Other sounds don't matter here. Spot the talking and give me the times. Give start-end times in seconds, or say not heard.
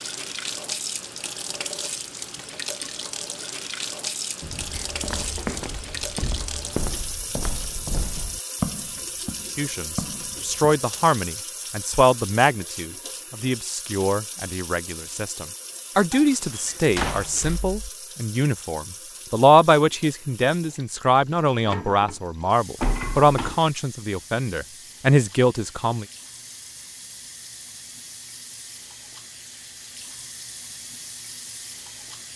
9.6-26.1.